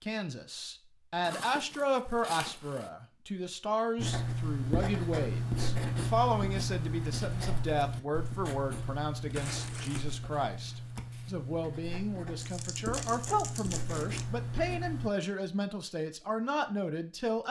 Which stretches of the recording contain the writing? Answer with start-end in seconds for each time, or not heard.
4.0-15.1.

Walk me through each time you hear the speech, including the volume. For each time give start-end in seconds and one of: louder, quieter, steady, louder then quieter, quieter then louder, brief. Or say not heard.
0.0-17.4 steady.